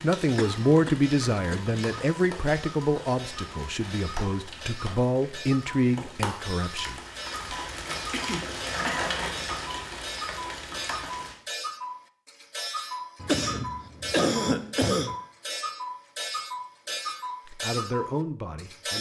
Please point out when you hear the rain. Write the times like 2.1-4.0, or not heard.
0.0-11.3.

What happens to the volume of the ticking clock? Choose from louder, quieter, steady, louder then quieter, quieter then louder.
louder.